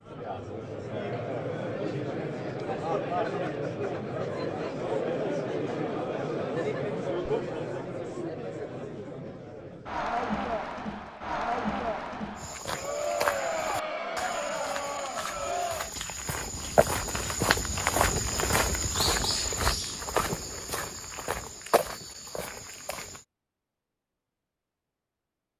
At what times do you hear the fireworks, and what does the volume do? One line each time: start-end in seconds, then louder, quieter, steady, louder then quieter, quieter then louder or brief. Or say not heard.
not heard.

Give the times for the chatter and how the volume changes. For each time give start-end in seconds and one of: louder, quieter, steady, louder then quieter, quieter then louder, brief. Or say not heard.
0.0-15.9 steady.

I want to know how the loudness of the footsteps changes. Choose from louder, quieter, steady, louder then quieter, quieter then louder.
louder then quieter.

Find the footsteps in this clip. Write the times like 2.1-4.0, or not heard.
12.3-23.2.